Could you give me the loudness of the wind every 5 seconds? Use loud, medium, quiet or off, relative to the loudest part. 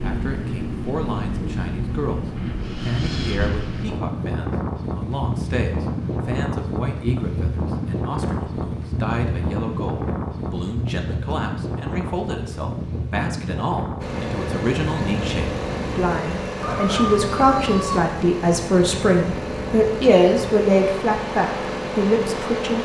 loud, loud, loud, medium, medium.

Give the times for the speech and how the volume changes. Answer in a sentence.
The speech can be heard briefly from 0.0 to 2.2 s; and from 2.8 to 22.7 s, getting louder.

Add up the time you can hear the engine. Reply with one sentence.
The engine can be heard for 9 seconds in total.